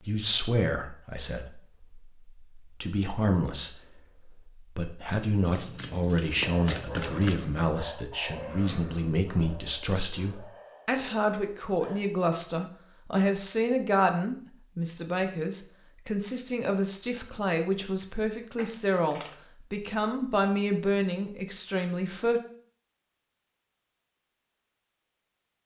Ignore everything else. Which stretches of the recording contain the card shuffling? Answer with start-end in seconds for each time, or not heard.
5.5-7.4, 18.6-19.4.